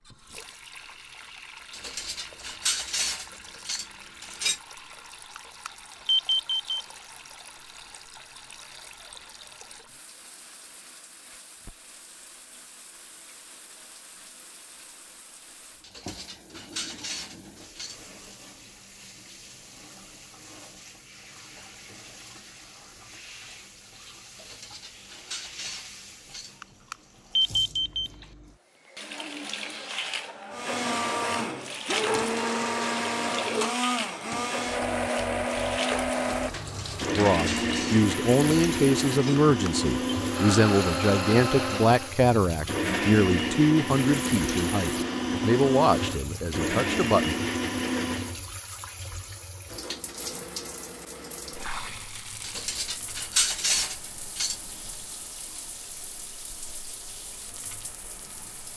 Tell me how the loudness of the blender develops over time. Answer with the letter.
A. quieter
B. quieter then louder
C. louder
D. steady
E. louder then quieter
D.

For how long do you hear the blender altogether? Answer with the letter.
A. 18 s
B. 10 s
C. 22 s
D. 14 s
A.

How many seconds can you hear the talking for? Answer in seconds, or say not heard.
10 s.